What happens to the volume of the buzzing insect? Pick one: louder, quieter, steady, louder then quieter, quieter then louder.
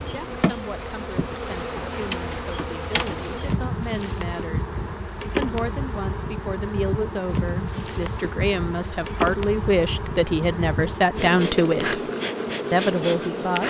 steady.